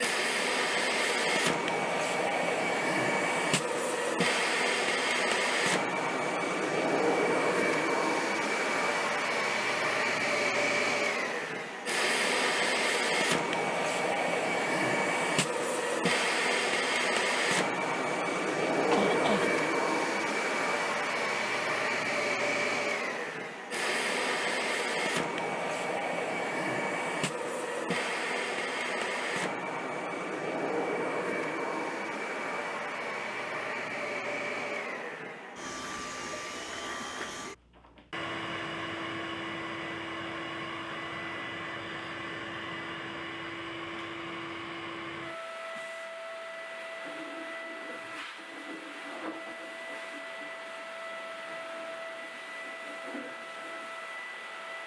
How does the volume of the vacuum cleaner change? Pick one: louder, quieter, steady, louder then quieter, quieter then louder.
quieter.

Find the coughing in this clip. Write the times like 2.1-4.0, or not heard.
18.9-19.5.